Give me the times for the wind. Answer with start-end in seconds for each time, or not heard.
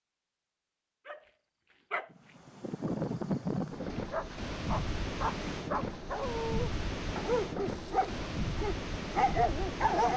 2.1-10.1.